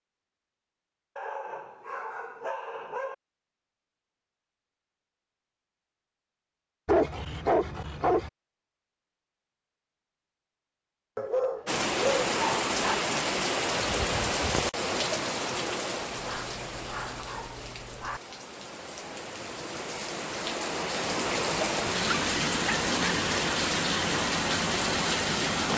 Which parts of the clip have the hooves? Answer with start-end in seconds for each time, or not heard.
not heard.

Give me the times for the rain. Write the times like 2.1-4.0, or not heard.
11.7-25.7.